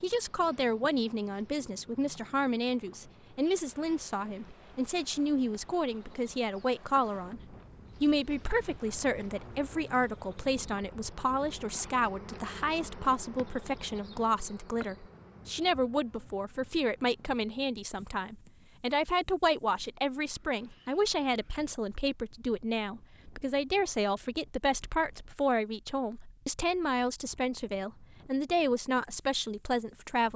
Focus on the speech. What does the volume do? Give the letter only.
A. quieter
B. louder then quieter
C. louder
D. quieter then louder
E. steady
E.